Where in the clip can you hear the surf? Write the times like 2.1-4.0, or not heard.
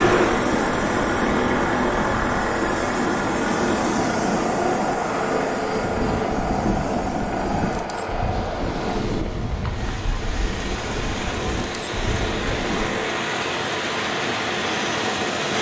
0.0-12.9.